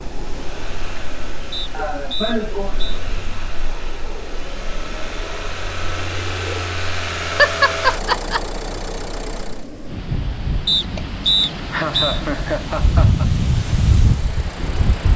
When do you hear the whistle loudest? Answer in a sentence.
The loudest moment of the whistle is at 11 seconds.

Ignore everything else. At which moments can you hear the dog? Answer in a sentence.
The dog can't be heard in this clip.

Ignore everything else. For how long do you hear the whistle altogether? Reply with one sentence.
You can hear the whistle for 3 seconds altogether.